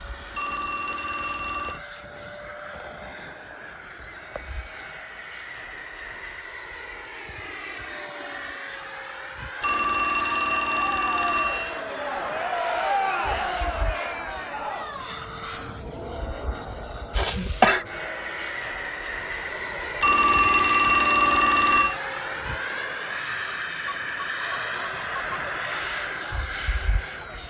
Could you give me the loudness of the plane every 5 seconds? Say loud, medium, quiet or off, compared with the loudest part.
medium, medium, medium, medium, loud, loud.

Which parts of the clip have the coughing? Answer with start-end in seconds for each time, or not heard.
17.1-17.9.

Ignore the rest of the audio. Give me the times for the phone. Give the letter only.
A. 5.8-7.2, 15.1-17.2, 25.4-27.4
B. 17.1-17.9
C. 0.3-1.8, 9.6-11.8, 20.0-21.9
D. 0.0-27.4
C.